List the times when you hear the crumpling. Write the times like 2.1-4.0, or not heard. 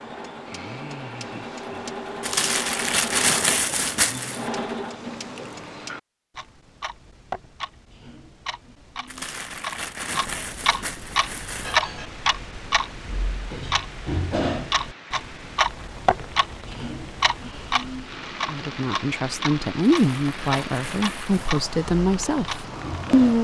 2.2-4.5, 9.1-11.8, 19.9-21.4.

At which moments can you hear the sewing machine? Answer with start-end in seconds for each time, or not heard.
0.0-5.7.